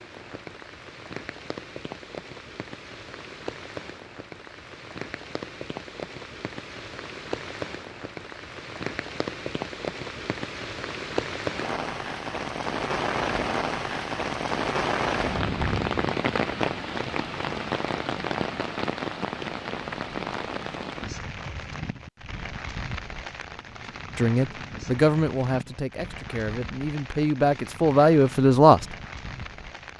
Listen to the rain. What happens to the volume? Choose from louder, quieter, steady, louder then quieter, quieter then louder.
louder then quieter.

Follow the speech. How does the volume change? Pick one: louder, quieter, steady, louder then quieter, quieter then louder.
quieter then louder.